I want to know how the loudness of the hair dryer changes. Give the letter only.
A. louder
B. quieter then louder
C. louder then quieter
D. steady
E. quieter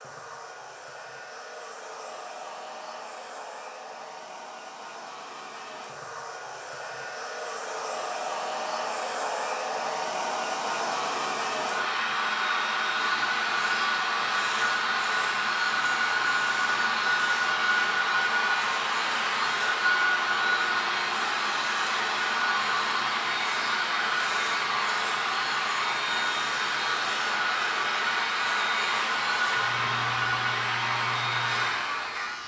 A.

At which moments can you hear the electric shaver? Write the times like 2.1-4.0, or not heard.
12.9-32.4.